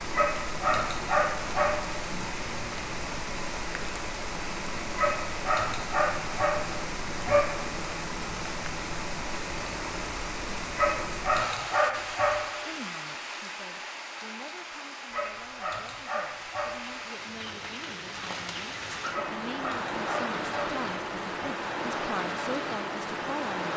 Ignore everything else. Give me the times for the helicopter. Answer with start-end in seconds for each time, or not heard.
not heard.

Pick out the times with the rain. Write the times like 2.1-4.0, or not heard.
0.0-23.7.